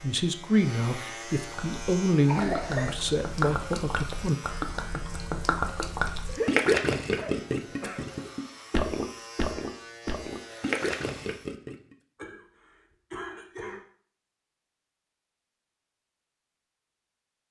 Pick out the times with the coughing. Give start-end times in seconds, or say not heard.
2.2-3.0, 6.2-8.1, 12.2-13.8.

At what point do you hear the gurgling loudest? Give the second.
7 s.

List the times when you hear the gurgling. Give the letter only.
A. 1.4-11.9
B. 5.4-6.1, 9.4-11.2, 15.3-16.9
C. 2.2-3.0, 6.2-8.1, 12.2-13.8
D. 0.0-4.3
A.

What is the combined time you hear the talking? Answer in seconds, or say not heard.
4 s.